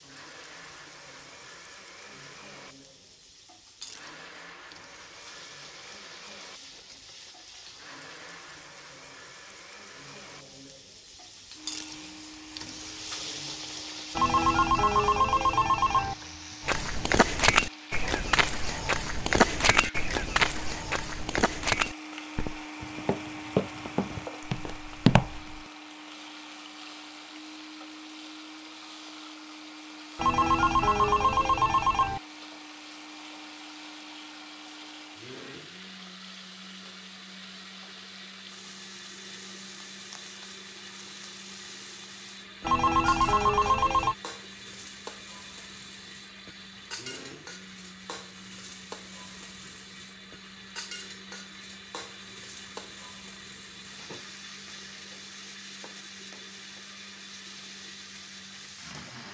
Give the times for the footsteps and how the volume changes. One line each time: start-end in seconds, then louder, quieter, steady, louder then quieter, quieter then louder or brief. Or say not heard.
16.6-25.6 quieter then louder.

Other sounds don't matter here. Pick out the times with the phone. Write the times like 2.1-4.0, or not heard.
14.2-16.1, 30.1-32.2, 42.6-44.1.